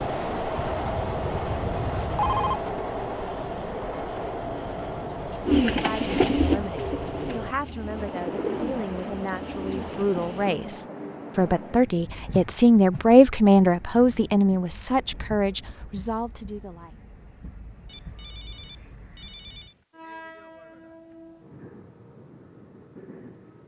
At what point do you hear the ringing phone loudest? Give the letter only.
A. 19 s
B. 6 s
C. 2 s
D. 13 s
C.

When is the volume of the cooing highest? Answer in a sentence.
The volume of the cooing peaks at 6 seconds.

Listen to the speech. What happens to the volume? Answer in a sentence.
The loudness of the speech goes up, then down.